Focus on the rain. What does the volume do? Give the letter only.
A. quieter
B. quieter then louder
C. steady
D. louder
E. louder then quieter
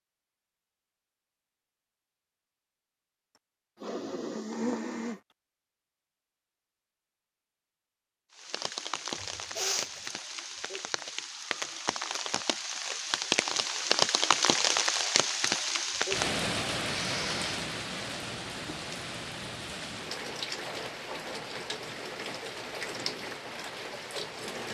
E.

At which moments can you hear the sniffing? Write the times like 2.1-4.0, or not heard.
3.4-5.3, 9.2-10.1, 16.9-17.6.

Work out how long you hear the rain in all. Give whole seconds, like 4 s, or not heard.
16 s.